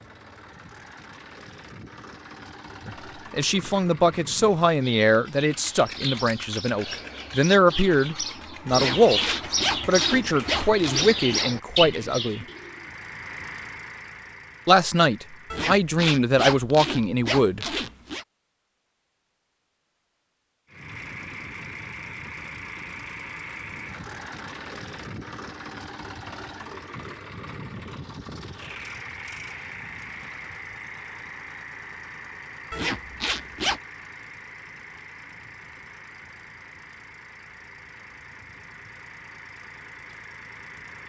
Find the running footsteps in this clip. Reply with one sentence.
You can't hear the running footsteps here.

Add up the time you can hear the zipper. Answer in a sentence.
You can hear the zipper for 7 seconds altogether.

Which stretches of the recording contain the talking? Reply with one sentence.
You can hear the talking from 2.9 to 12.4 s and from 14.7 to 17.6 s.